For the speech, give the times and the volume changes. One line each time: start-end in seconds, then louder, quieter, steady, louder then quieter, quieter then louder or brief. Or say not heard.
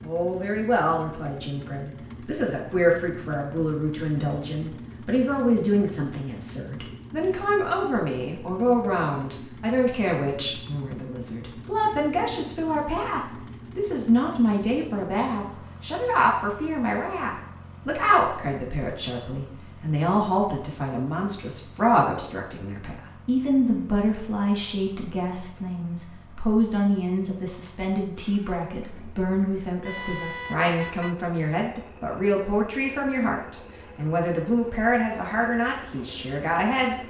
0.0-37.0 steady.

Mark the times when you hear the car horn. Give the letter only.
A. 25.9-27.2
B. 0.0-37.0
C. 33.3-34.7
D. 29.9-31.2
D.